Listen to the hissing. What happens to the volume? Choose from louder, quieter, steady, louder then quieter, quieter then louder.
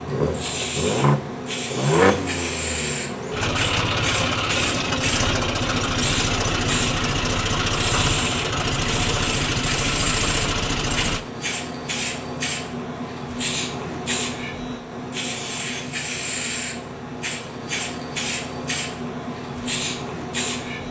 steady.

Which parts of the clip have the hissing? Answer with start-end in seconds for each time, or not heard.
0.0-20.8.